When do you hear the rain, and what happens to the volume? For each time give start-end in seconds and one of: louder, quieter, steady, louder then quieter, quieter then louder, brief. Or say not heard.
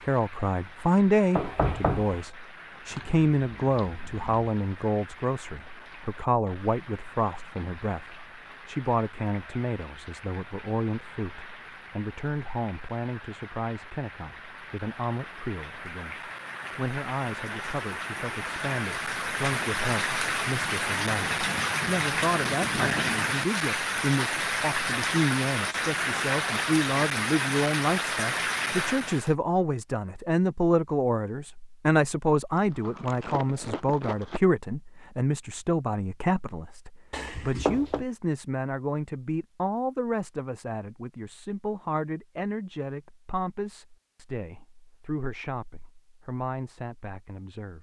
0.0-29.4 louder.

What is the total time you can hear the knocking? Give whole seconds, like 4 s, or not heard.
2 s.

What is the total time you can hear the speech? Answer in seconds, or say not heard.
48 s.